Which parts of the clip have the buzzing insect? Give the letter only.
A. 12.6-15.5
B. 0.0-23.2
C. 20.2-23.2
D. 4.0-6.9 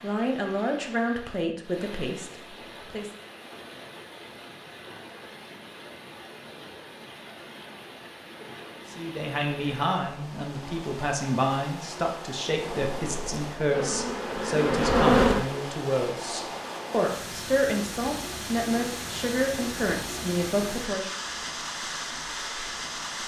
A.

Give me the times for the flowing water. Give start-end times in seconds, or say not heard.
0.0-23.2.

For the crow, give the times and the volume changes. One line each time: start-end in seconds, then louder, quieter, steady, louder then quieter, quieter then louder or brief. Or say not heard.
not heard.